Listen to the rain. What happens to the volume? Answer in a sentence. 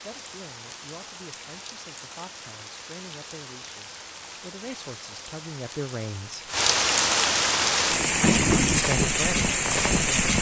The volume of the rain goes up.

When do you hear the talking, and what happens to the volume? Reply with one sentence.
The talking can be heard from 0.0 to 6.5 s, getting louder; and briefly from 8.8 to 10.3 s.